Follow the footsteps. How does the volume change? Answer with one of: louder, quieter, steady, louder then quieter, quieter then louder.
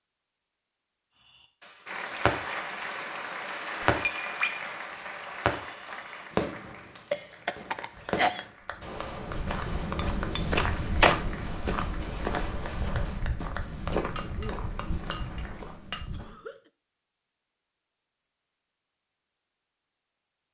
louder then quieter.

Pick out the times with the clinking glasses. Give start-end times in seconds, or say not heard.
4.0-4.7, 9.9-10.4, 13.9-16.1.